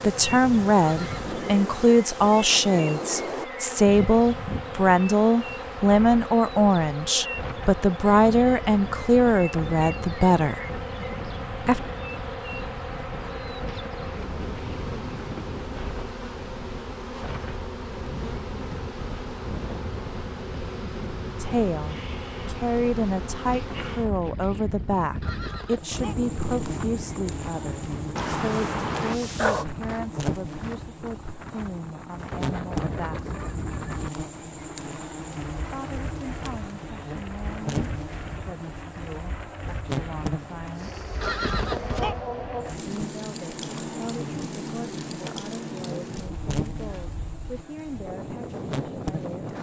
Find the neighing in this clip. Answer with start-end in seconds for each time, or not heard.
0.8-1.4, 25.2-26.1, 41.2-42.1.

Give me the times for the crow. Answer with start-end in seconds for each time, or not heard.
not heard.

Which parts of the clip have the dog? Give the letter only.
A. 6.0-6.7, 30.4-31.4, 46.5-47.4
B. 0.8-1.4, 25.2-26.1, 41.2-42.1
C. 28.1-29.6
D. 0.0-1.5
C.